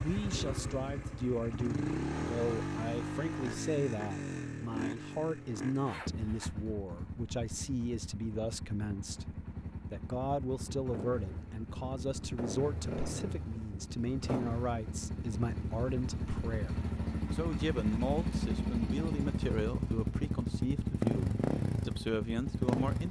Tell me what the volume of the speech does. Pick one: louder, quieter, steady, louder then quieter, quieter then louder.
steady.